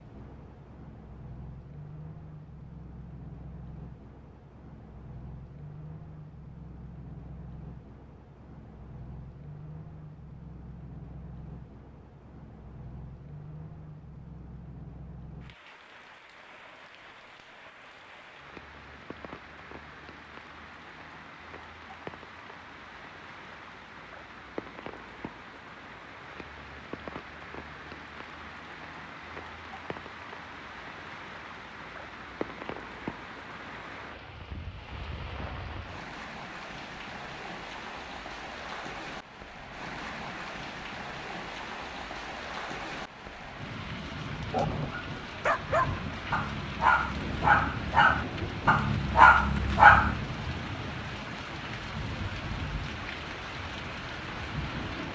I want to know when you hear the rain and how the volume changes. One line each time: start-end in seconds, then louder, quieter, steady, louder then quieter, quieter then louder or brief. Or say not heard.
0.0-55.1 louder.